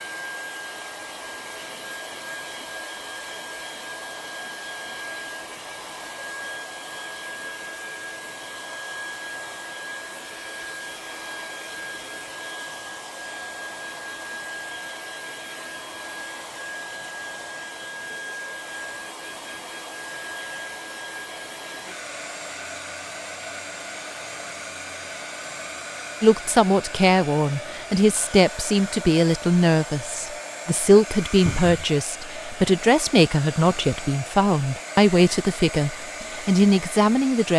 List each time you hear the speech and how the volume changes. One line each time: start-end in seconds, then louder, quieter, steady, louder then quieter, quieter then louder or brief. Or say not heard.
26.2-37.5 steady.